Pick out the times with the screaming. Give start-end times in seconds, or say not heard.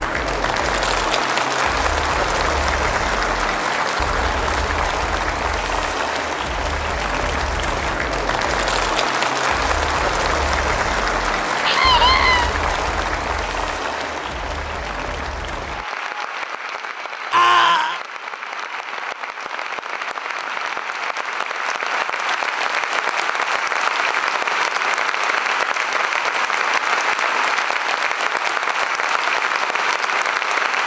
11.6-12.5, 17.3-18.0.